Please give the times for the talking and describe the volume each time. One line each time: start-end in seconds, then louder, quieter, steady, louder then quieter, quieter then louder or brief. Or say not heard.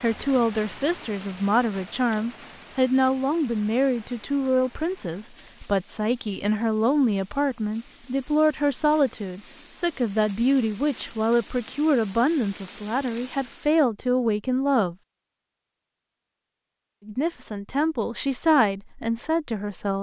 0.0-14.9 steady
17.1-19.9 brief.